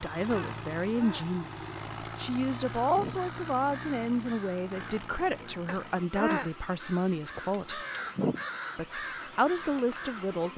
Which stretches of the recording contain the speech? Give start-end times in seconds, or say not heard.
0.0-7.8, 8.8-10.5.